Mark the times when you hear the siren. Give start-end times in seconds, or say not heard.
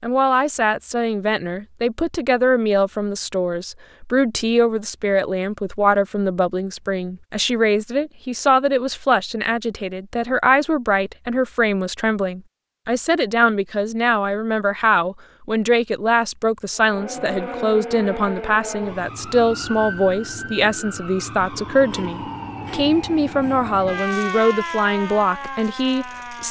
16.8-26.4.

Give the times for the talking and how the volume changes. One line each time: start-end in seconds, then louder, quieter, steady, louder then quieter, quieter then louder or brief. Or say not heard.
0.0-26.4 steady.